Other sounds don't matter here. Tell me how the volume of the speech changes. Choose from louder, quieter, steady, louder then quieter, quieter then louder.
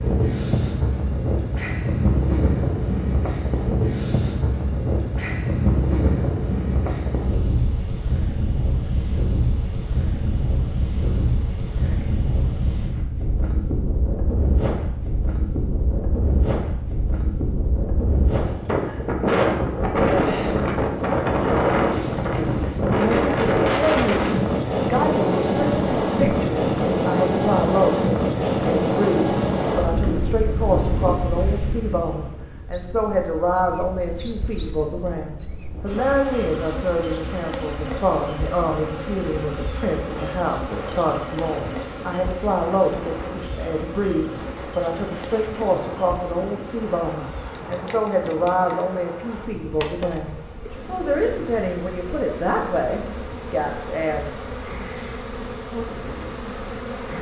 steady.